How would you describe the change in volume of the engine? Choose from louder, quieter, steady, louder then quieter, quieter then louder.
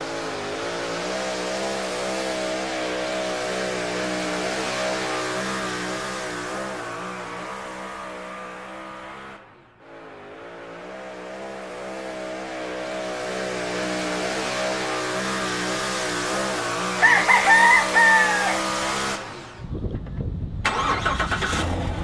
quieter then louder.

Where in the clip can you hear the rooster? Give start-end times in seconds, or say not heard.
17.0-18.6.